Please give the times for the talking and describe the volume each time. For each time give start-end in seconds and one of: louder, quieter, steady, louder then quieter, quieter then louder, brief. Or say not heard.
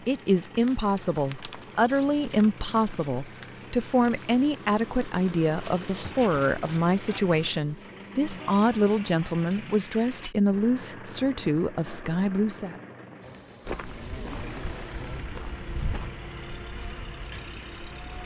0.1-12.8 steady.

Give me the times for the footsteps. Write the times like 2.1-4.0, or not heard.
13.7-16.1.